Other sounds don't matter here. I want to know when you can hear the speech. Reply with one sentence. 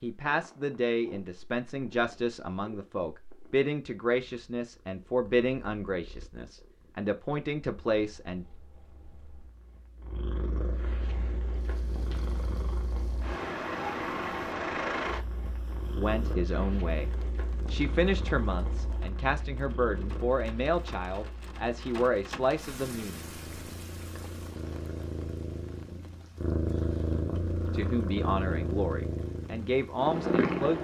You can hear the speech from 0.0 to 8.4 s, from 15.9 to 23.2 s and from 27.7 to 30.8 s.